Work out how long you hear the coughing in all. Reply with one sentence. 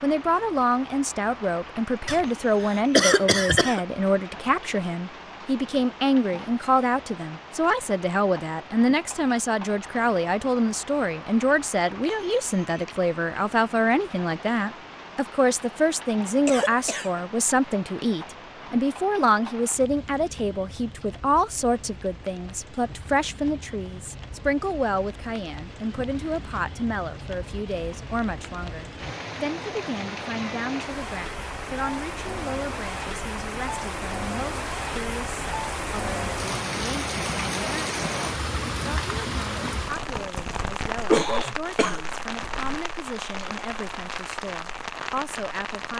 The coughing can be heard for 4 seconds in total.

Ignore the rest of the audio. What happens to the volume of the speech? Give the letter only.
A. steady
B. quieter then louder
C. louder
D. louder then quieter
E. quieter
E.